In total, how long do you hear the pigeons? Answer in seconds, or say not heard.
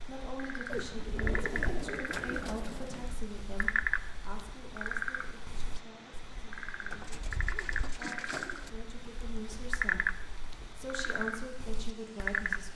4 s.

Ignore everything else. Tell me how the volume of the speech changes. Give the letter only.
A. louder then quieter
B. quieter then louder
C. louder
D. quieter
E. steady
B.